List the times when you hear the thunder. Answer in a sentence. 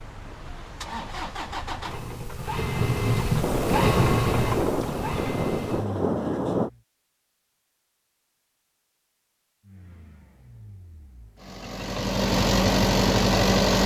The thunder can be heard from 3.4 to 6.7 s.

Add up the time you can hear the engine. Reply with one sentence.
You can hear the engine for 11 seconds altogether.